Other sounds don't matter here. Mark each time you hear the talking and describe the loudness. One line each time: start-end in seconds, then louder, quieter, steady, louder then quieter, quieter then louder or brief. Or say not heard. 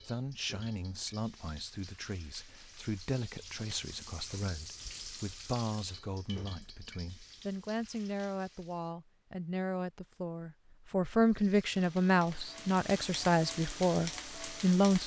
0.0-15.0 louder.